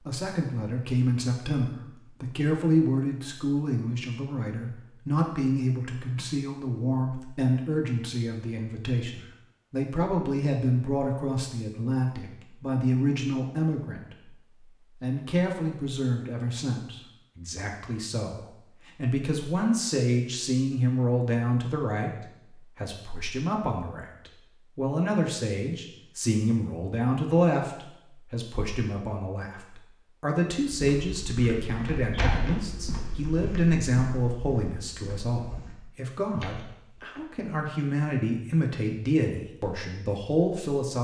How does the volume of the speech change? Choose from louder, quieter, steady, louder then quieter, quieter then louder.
steady.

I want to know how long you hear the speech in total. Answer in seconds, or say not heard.
40 s.